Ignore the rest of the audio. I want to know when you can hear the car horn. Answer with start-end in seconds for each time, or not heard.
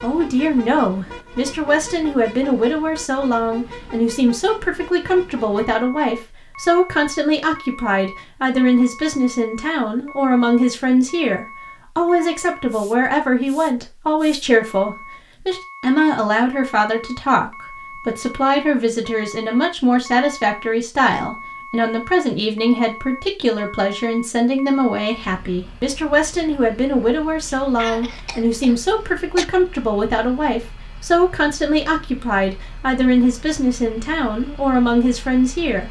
not heard.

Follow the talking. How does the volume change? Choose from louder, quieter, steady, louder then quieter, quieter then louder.
steady.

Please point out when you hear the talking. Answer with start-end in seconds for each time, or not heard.
0.0-35.8.